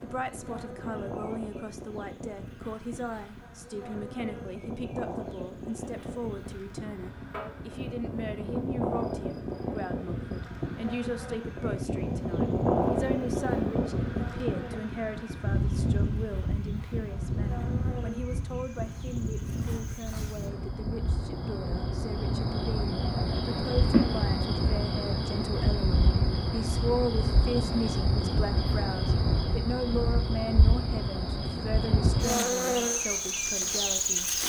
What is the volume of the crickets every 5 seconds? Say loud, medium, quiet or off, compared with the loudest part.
quiet, quiet, quiet, quiet, loud, loud, loud.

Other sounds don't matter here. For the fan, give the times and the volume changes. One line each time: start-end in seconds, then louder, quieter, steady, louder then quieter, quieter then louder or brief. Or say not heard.
0.0-20.6 louder then quieter.